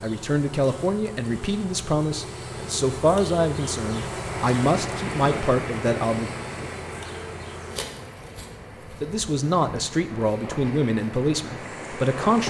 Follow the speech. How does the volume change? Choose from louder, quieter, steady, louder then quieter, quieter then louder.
steady.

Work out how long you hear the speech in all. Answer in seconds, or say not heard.
10 s.